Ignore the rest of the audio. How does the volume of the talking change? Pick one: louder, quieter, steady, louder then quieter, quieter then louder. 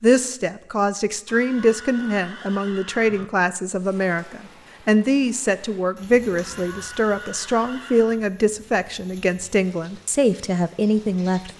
steady.